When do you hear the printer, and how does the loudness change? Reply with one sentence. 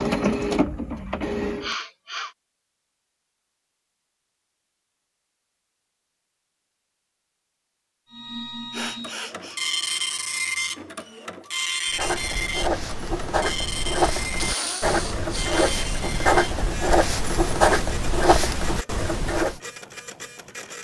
The printer can be heard briefly from 0.0 to 1.8 s; and from 8.1 to 20.8 s, getting quieter.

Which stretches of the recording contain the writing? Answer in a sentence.
The writing can be heard from 11.8 to 19.6 s.